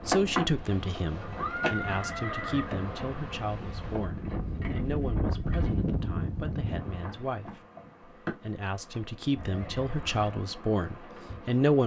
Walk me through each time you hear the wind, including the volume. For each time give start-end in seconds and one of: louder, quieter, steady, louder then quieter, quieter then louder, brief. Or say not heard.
0.0-7.2 louder.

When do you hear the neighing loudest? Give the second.
2 s.